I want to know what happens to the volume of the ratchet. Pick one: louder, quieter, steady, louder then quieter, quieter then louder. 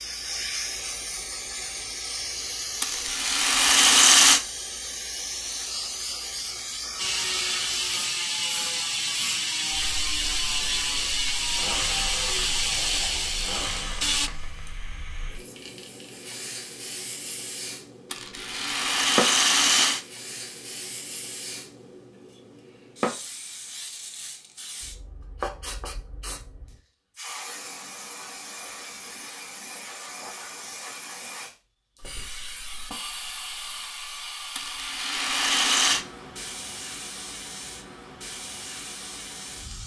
steady.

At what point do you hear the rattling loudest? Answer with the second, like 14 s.
4 s.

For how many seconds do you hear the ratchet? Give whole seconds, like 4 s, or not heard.
7 s.